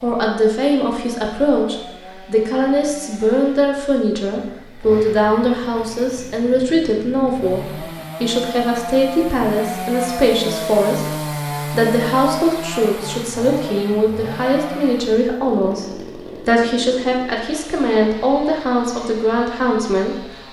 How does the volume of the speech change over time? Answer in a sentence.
The loudness of the speech stays about the same.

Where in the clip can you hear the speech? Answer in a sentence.
The speech can be heard from 0.0 to 15.8 s and from 16.4 to 20.4 s.